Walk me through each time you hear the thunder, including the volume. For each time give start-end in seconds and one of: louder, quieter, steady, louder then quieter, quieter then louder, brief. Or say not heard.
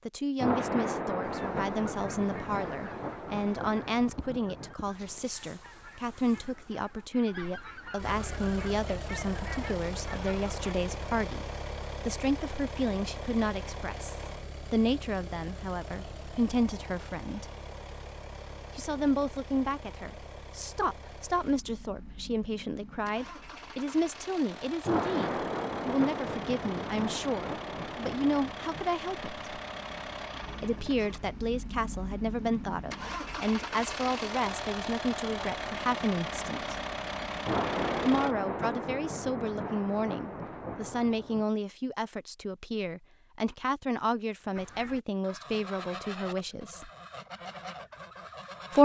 0.3-4.8 quieter
24.8-28.9 quieter
37.5-41.5 quieter.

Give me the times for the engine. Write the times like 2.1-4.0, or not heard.
8.0-38.4.